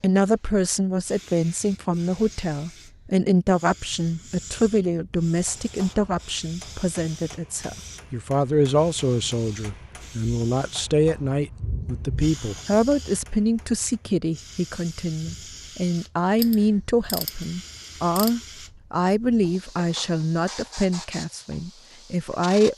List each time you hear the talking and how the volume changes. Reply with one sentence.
The talking can be heard from 0.0 to 22.7 s, at a steady volume.